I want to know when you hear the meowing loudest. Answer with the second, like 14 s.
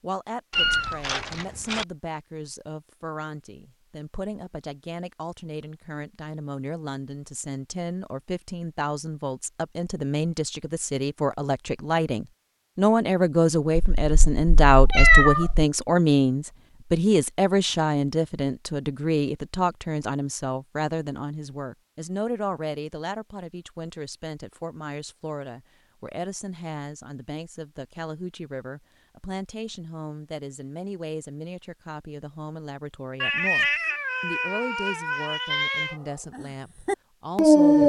15 s.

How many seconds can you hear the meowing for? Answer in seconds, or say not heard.
6 s.